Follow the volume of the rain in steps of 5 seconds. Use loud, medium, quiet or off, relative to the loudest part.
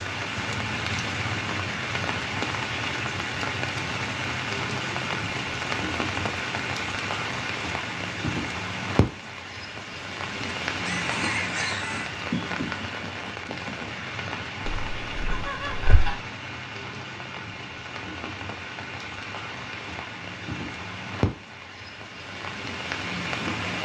loud, loud, loud, medium, loud.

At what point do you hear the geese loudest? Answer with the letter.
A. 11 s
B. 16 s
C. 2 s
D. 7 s
B.